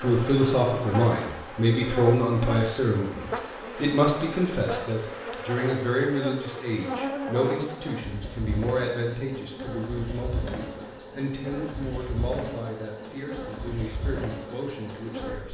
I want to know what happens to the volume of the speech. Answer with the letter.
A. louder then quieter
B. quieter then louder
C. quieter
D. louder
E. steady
C.